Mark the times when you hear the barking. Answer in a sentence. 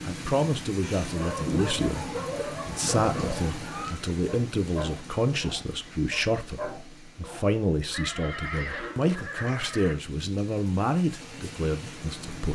The barking can be heard from 1.1 to 7.5 s.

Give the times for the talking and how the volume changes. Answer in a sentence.
The talking can be heard from 0.1 to 12.4 s, at a steady volume.